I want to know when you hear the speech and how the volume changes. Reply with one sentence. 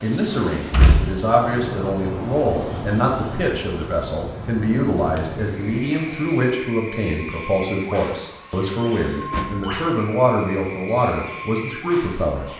The speech can be heard from 0.0 to 12.4 s, at a steady volume.